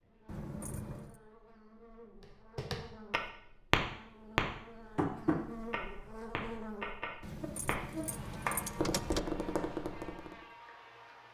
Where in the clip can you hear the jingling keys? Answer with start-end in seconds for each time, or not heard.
0.2-1.2, 7.2-9.2.